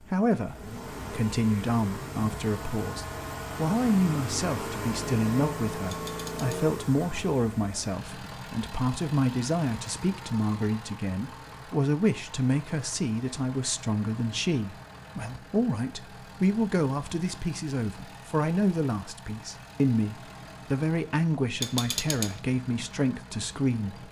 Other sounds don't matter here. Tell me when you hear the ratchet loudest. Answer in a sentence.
The loudest moment of the ratchet is at 22 seconds.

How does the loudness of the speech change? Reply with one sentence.
The volume of the speech stays about the same.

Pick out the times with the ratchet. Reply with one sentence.
The ratchet can be heard from 5.8 to 6.5 s and from 21.6 to 22.4 s.